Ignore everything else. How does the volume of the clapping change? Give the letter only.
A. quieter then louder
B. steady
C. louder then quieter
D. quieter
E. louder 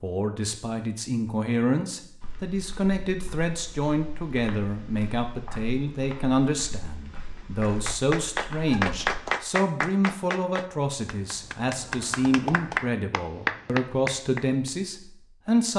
A.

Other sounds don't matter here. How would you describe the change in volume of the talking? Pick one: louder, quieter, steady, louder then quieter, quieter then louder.
steady.